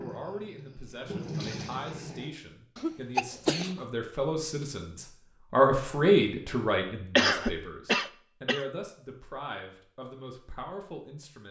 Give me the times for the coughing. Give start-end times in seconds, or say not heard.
2.8-3.8, 7.2-8.7.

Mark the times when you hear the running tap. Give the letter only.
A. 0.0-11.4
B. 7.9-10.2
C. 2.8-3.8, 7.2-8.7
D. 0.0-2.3
D.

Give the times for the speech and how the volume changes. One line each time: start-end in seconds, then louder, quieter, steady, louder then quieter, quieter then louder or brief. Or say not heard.
0.0-11.4 louder then quieter.